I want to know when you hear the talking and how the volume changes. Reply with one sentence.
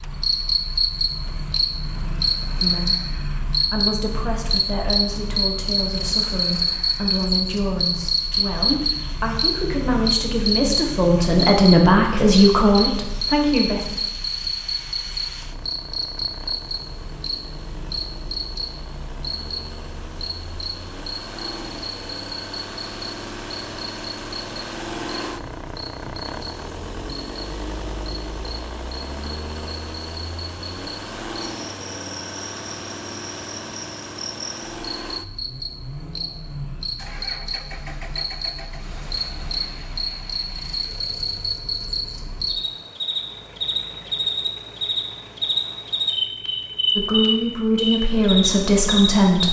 The talking can be heard from 2.6 to 13.8 s, getting louder; and briefly from 47.0 to 49.4 s.